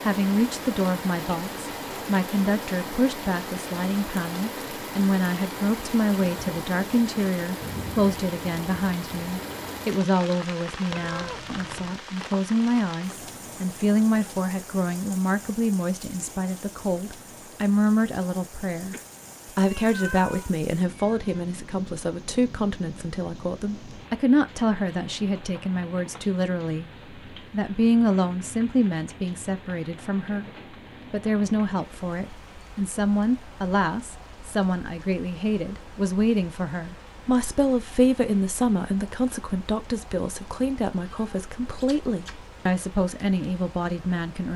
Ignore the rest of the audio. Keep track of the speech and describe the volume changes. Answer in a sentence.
The volume of the speech stays about the same.